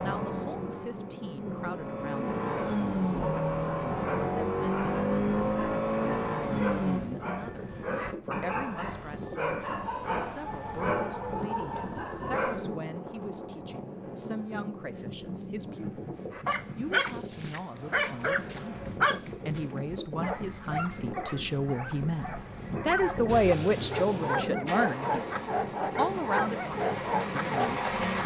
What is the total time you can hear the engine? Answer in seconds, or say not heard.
12 s.